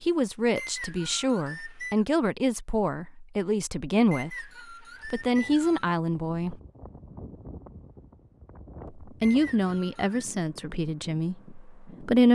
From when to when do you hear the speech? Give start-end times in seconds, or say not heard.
0.0-4.5, 5.0-6.5, 9.0-12.3.